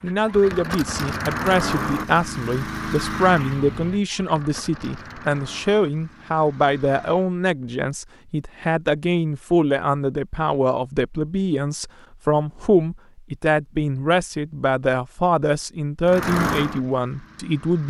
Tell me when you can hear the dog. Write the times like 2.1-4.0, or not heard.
not heard.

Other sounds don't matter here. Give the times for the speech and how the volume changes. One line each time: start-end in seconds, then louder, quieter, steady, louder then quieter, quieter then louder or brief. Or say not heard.
0.0-17.8 steady.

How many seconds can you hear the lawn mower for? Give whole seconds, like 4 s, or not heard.
9 s.